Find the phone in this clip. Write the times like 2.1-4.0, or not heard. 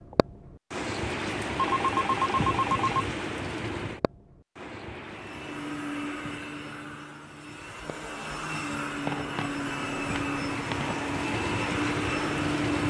1.6-3.1, 9.1-11.1.